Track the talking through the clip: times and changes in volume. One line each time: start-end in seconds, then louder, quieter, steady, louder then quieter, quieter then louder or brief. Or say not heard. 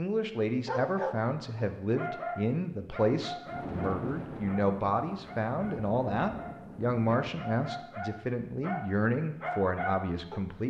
0.0-10.6 steady.